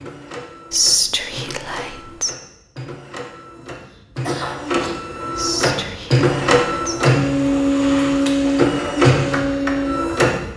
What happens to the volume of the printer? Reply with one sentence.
The loudness of the printer goes up.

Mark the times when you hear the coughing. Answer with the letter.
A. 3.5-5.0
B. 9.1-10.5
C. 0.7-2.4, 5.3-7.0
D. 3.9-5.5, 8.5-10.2
A.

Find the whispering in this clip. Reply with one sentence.
You can hear the whispering from 0.7 to 2.4 s and from 5.3 to 7.0 s.